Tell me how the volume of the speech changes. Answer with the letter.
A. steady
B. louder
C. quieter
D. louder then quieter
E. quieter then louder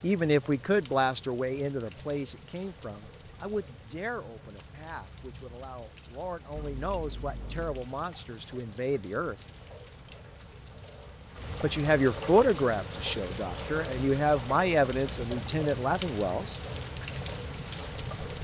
E.